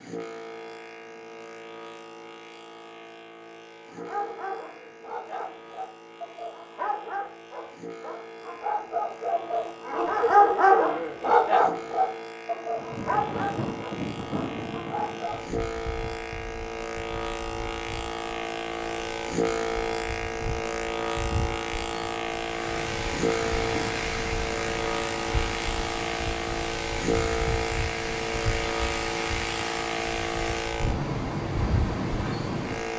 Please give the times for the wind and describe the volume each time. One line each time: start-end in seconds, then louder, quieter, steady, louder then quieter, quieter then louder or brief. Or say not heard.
12.8-32.9 quieter then louder.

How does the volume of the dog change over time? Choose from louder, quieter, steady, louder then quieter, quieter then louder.
louder then quieter.